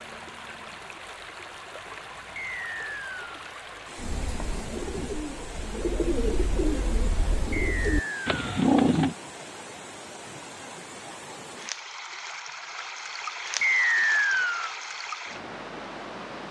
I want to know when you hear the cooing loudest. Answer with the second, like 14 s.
9 s.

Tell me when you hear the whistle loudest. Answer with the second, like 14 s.
14 s.